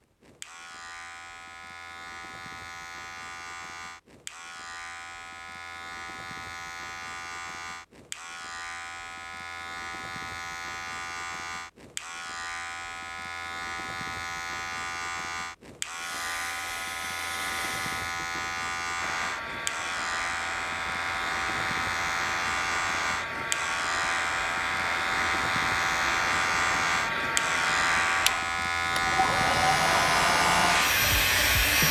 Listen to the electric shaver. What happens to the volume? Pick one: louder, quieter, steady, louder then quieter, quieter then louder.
louder.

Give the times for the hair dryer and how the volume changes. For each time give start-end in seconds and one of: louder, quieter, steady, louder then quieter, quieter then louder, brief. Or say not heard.
15.9-31.8 louder.